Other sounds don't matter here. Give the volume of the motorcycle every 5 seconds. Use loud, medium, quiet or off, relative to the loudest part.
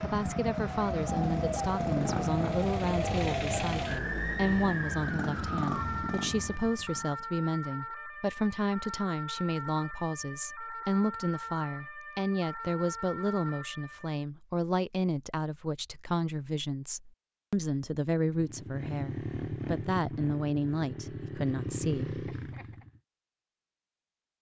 loud, loud, off, loud, loud.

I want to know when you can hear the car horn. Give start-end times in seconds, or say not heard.
not heard.